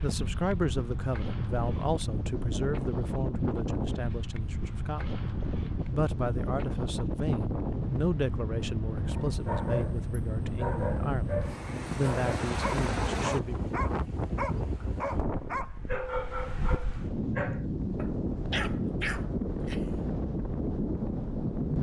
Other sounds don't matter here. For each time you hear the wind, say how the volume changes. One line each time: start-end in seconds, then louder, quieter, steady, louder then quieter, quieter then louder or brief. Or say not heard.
0.0-21.7 steady.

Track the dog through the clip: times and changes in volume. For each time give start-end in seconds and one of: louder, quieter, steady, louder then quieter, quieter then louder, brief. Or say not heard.
9.1-19.9 steady.